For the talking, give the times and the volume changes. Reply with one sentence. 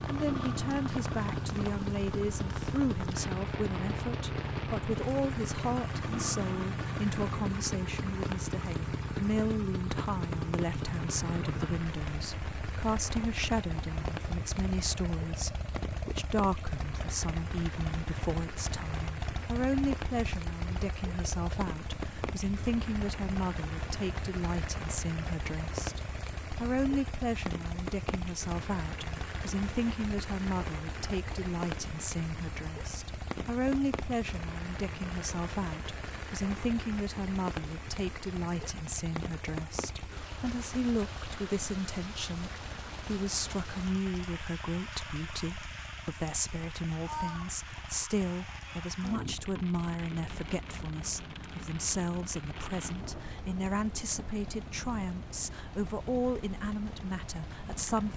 The talking can be heard from 0.1 to 58.1 s, at a steady volume.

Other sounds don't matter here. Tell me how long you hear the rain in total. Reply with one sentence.
You can hear the rain for 58 seconds altogether.